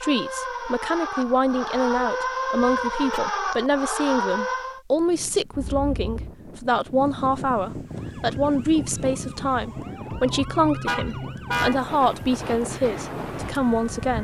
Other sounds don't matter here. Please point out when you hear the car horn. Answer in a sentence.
You can hear the car horn from 2.6 to 3.2 s, from 5.5 to 6.3 s and from 10.8 to 11.8 s.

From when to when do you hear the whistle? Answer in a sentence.
You can't hear the whistle here.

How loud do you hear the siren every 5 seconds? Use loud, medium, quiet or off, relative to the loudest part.
loud, quiet, medium.